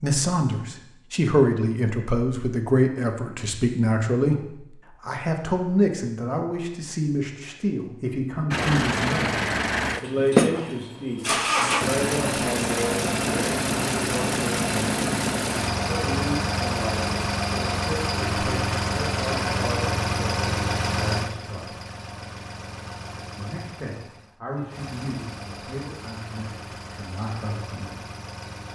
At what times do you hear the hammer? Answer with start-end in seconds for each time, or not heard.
not heard.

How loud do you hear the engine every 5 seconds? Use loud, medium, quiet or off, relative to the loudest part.
off, loud, loud, loud, medium, quiet.